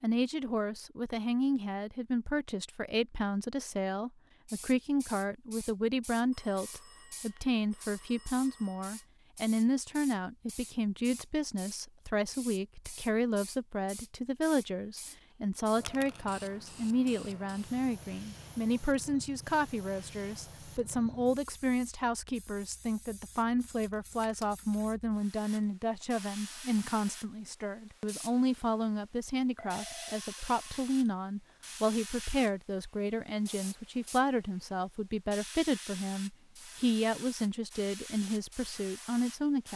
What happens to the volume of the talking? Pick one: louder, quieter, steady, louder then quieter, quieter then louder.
steady.